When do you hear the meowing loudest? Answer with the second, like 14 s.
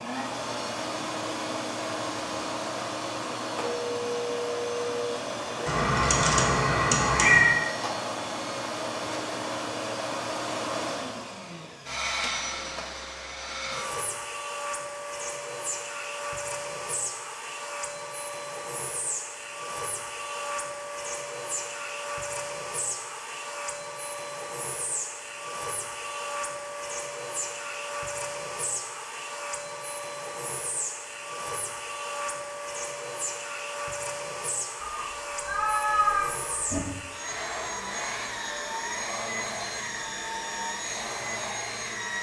7 s.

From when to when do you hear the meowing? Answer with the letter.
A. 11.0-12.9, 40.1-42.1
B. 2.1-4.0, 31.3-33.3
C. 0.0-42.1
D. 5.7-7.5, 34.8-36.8
D.